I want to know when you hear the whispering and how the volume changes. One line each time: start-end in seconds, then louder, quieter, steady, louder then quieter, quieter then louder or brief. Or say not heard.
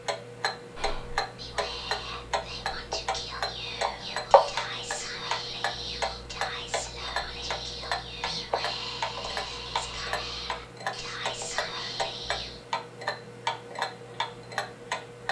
0.8-12.7 steady.